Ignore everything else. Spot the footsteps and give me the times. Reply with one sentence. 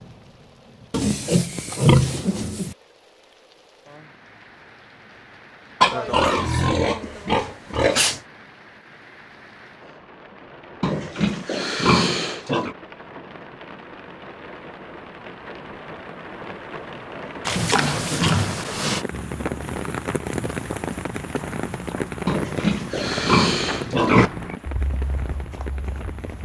You can hear the footsteps from 19.1 to 26.4 s.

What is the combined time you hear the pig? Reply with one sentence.
The pig can be heard for 10 seconds in total.